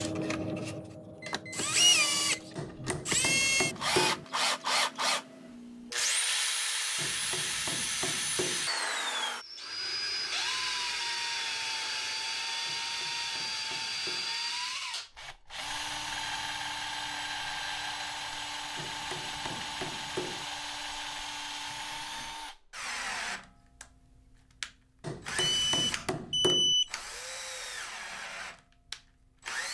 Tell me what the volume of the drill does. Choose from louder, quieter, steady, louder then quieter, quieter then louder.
quieter.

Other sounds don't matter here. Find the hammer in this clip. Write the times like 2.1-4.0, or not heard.
2.5-4.2, 7.0-8.7, 12.7-14.3, 18.8-20.4, 25.0-26.8.